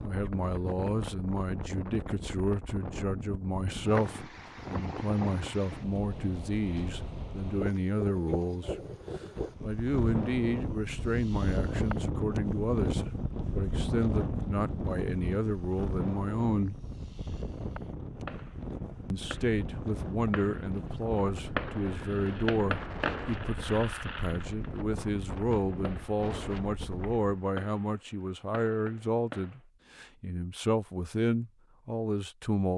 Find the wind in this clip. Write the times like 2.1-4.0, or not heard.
0.0-27.2.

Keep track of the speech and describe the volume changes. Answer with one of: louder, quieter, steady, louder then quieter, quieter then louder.
steady.